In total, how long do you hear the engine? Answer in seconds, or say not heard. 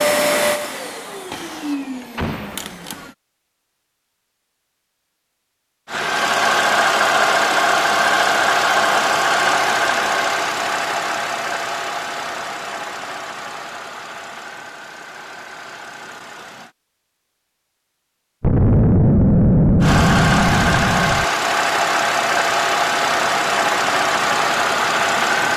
20 s.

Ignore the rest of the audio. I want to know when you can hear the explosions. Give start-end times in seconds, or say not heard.
2.1-2.6, 18.4-21.2.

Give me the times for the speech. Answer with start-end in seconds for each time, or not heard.
not heard.